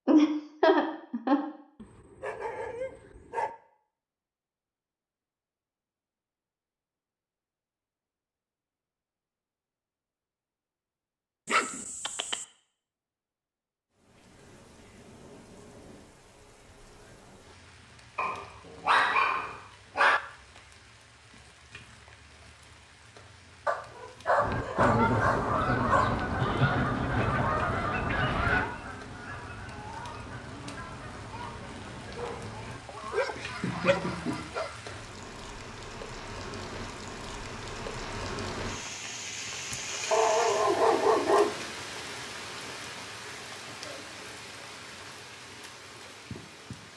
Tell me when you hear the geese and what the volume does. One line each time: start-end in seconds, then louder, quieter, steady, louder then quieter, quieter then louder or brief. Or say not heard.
24.4-34.9 quieter.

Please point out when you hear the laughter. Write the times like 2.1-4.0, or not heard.
0.1-1.4, 26.3-28.3, 32.9-35.0.